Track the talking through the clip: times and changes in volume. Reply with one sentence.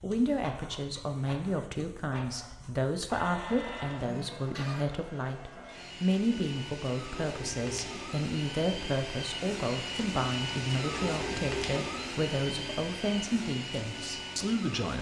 The talking can be heard from 0.0 to 14.9 s, at a steady volume.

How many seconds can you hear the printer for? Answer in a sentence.
The printer can be heard for 15 seconds in total.